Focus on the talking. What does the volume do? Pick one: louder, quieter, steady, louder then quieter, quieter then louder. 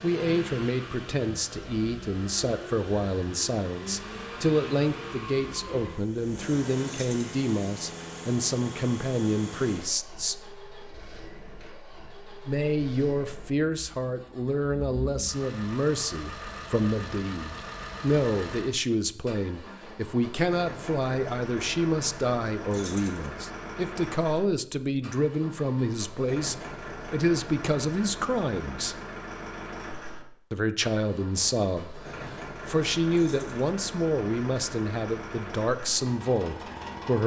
steady.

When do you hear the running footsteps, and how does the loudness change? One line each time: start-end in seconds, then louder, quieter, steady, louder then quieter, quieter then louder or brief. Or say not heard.
not heard.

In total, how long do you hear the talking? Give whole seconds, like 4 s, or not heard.
34 s.